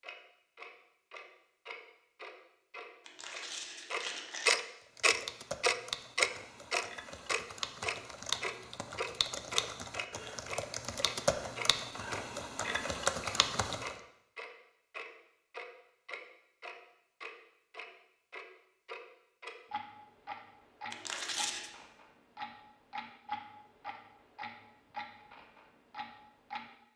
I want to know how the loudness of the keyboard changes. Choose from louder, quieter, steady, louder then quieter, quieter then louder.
louder.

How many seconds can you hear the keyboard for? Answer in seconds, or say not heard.
9 s.